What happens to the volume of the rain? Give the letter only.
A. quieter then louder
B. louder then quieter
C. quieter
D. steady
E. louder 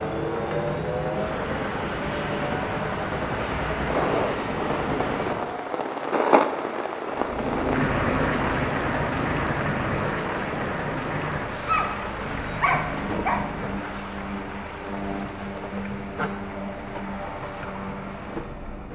B.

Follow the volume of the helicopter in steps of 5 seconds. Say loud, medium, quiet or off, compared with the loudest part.
loud, loud, medium, medium.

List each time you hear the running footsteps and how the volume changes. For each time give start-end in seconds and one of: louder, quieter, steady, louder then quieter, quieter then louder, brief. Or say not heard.
not heard.